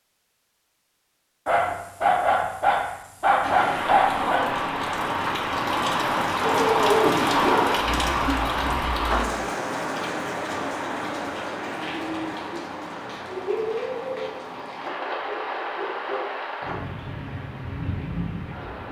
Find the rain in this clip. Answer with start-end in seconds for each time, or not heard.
3.4-18.8.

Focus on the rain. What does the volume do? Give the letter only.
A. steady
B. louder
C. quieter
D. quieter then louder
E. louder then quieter
C.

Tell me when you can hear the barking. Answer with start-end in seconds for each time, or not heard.
1.4-4.5, 6.4-8.3, 14.8-16.9.